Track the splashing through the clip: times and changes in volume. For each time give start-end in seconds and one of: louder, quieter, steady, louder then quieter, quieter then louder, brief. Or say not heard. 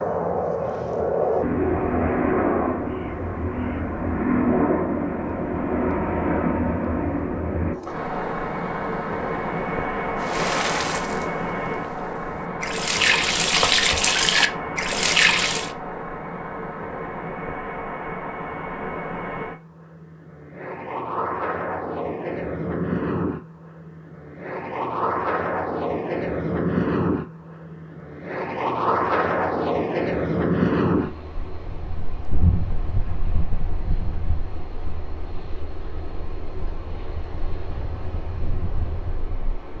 10.2-15.7 quieter then louder.